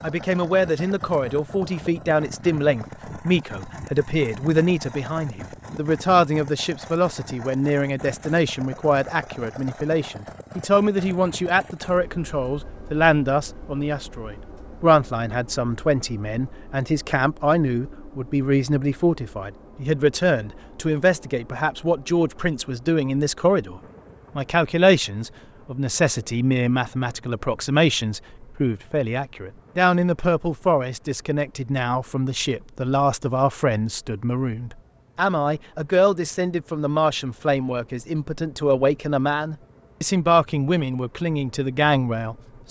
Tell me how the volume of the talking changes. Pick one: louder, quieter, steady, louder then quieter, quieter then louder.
steady.